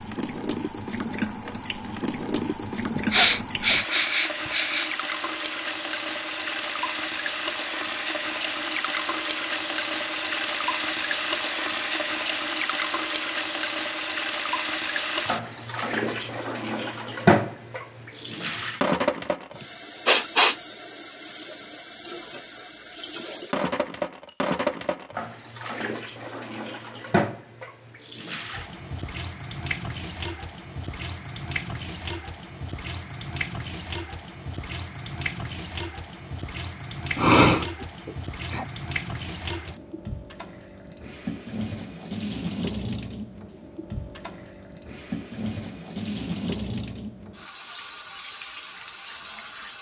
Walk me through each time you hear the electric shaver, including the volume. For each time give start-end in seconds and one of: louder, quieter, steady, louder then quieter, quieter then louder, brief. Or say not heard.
not heard.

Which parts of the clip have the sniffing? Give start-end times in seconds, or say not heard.
2.9-4.9, 19.6-20.6, 37.1-38.6.